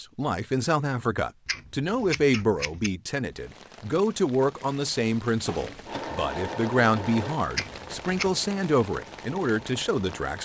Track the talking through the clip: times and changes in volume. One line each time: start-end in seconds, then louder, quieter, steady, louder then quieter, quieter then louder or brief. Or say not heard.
0.0-10.3 steady.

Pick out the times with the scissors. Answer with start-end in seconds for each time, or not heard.
1.4-2.9, 7.5-8.3.